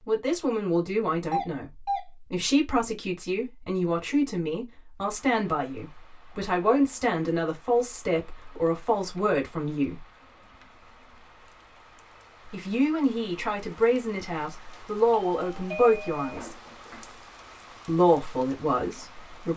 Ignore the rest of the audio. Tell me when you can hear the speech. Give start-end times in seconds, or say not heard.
0.1-10.1, 12.5-16.6, 17.9-19.5.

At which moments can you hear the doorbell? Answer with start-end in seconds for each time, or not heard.
1.3-2.0, 14.7-16.4.